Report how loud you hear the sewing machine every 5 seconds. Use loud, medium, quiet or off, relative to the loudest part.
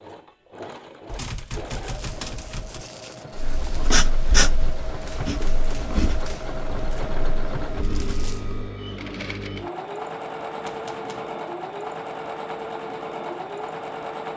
medium, loud, loud.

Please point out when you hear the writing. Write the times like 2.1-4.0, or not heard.
3.4-8.7.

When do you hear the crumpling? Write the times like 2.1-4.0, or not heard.
1.8-3.9, 7.8-8.4.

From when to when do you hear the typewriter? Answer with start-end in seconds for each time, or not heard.
1.1-2.9, 5.0-7.0, 10.6-11.3.